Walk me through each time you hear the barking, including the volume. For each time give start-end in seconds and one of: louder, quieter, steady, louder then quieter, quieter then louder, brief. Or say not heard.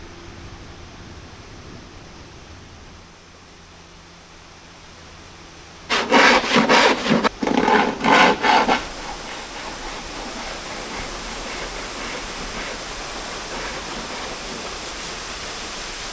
not heard.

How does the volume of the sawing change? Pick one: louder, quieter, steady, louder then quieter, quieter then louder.
quieter.